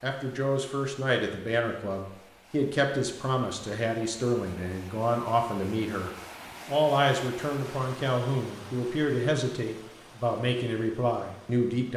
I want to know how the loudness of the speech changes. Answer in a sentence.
The volume of the speech stays about the same.